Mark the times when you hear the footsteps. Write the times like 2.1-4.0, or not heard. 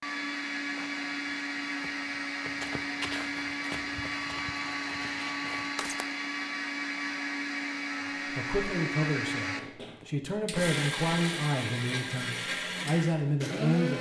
0.7-6.0.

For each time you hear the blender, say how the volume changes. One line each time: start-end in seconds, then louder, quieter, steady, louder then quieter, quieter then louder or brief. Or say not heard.
0.0-13.9 steady.